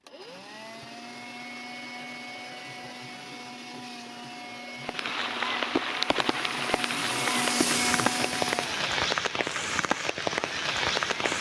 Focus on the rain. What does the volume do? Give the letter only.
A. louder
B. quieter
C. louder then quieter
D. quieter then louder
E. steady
E.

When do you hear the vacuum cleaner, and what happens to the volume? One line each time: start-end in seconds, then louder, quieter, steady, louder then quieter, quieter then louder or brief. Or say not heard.
0.0-11.3 louder then quieter.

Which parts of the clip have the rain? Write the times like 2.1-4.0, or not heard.
4.8-11.3.